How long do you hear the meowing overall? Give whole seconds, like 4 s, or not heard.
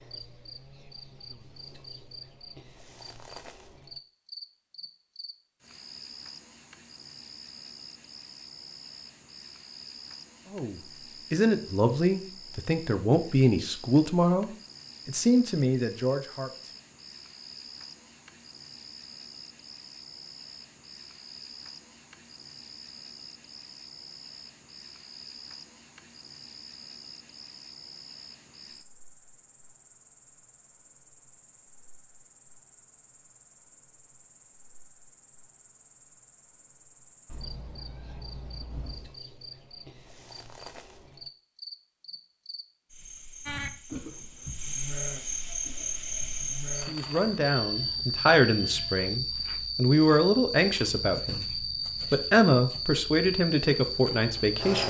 2 s.